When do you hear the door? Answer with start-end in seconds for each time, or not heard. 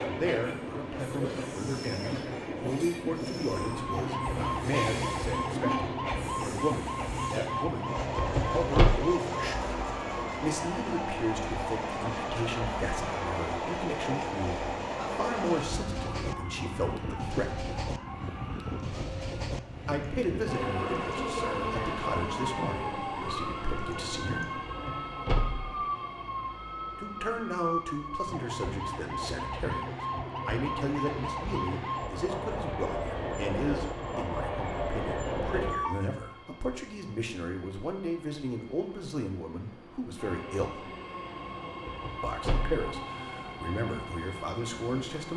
8.2-8.9, 24.6-25.8, 41.9-42.8.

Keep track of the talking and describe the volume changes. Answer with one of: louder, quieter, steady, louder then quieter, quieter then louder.
steady.